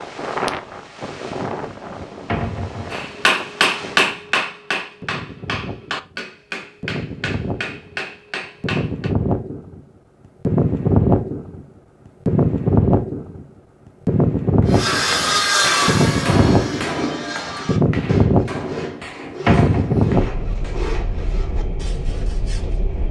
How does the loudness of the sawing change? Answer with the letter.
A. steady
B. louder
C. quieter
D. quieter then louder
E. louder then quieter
C.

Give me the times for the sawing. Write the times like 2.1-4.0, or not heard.
14.7-22.8.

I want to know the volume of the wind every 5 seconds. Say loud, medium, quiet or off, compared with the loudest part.
quiet, medium, loud, loud, medium.